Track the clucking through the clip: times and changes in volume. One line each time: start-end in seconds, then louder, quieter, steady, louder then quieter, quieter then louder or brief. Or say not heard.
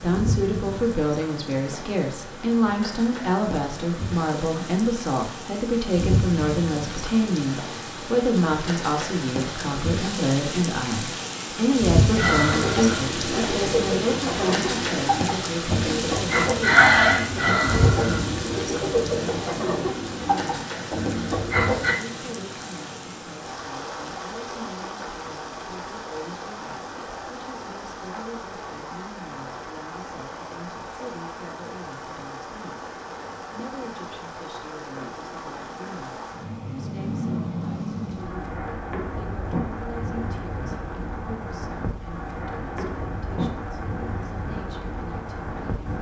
12.2-21.9 louder then quieter.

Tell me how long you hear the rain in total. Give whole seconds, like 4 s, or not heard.
46 s.